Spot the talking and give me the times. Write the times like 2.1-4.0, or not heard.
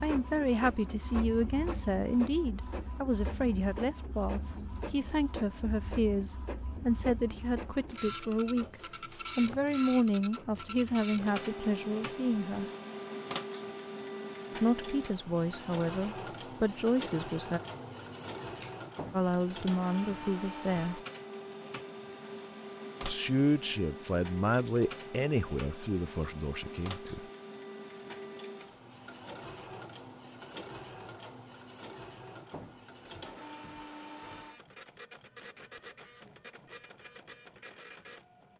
0.0-12.7, 14.6-17.6, 19.1-21.0, 23.0-27.2.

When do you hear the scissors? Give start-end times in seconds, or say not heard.
17.6-18.8.